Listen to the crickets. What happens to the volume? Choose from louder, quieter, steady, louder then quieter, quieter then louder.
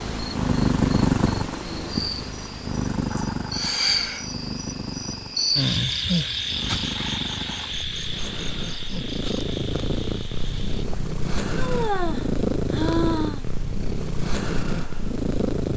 louder then quieter.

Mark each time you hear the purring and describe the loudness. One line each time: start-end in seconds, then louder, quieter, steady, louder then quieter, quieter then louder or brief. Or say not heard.
0.0-15.7 quieter then louder.